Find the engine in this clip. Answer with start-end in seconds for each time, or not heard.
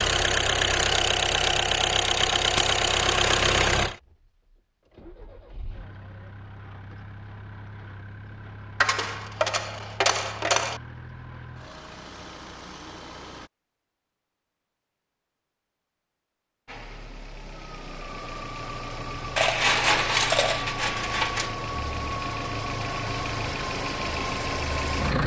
0.0-13.5, 16.6-25.2.